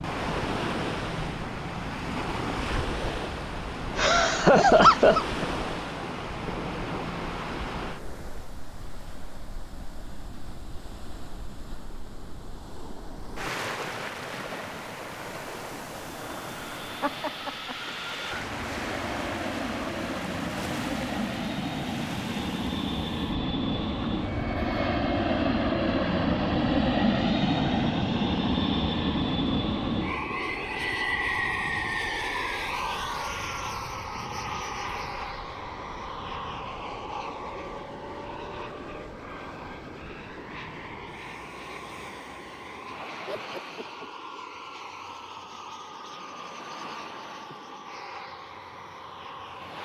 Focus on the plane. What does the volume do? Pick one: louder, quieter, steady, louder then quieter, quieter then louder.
louder then quieter.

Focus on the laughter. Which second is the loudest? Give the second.
5 s.